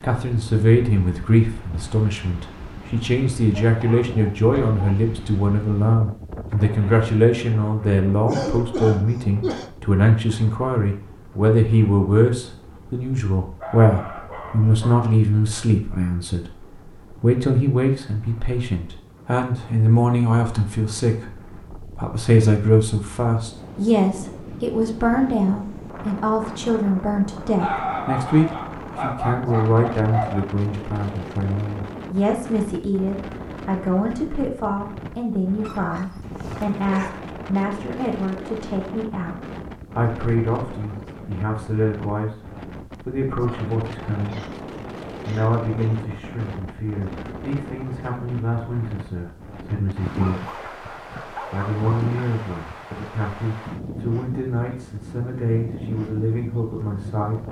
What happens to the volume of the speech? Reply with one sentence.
The volume of the speech goes down.